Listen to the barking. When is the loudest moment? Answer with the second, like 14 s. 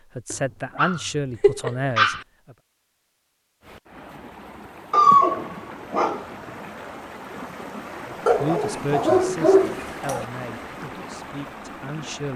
5 s.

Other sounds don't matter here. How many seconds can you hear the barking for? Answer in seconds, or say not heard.
5 s.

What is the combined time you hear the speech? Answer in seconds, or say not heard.
7 s.